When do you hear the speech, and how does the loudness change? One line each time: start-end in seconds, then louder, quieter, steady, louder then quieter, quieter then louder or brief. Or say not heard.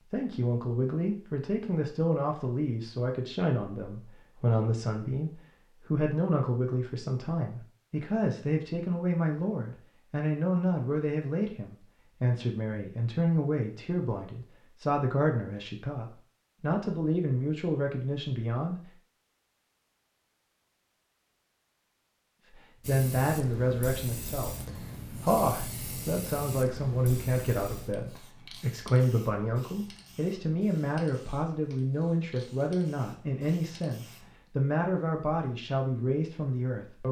0.1-18.9 steady
22.4-37.0 steady.